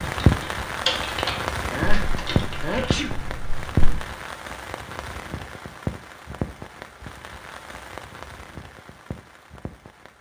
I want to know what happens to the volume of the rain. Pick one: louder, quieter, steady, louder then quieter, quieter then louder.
quieter.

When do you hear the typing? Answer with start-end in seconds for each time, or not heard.
0.2-4.0.